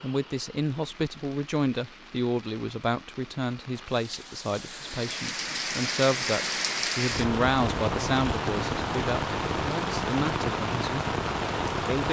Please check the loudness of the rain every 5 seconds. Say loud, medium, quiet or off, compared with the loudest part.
quiet, loud, loud.